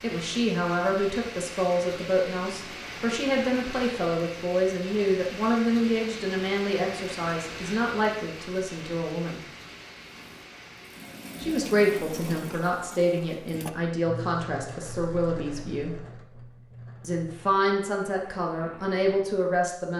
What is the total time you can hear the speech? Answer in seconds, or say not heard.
17 s.